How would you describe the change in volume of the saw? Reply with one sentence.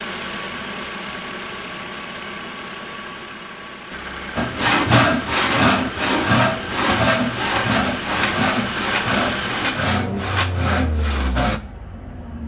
The loudness of the saw goes down.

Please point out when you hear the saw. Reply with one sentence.
You can hear the saw from 4.3 to 11.6 s.